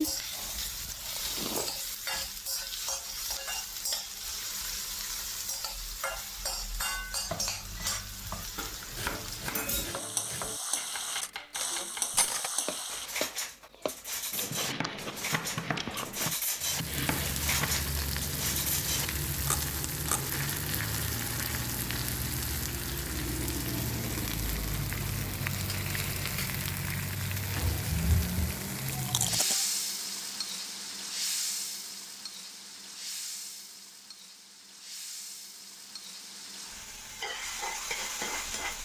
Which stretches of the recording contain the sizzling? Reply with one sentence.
The sizzling can be heard from 0.0 to 13.1 s and from 16.6 to 38.8 s.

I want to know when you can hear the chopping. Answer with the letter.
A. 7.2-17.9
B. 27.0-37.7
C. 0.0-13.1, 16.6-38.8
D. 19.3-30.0
A.